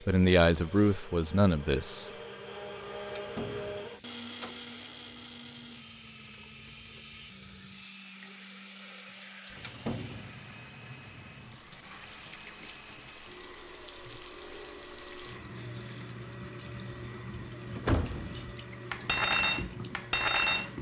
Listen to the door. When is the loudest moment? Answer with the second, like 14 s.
18 s.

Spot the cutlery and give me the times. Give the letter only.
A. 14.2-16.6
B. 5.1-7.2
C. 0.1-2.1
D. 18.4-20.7
D.